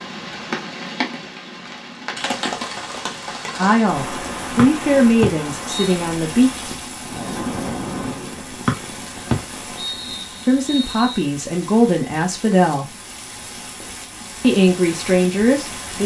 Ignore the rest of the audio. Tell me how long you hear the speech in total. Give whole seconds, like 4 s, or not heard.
7 s.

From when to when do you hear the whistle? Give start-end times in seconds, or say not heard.
4.5-6.0, 8.7-11.2.